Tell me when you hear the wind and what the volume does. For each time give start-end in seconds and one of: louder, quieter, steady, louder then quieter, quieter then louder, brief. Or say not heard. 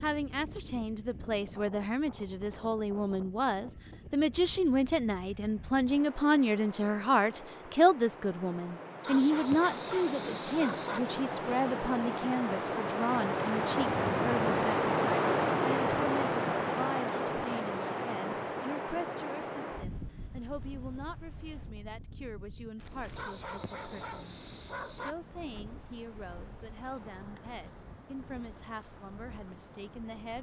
0.0-30.3 louder then quieter.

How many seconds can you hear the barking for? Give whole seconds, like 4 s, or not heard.
4 s.